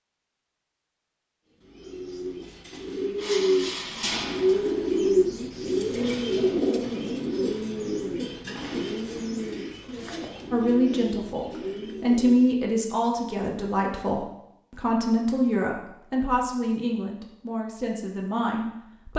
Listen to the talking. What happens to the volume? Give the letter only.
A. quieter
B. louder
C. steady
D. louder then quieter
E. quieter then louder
A.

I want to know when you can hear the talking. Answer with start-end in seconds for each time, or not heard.
10.5-19.1.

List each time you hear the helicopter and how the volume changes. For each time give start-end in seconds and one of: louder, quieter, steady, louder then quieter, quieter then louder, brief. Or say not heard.
not heard.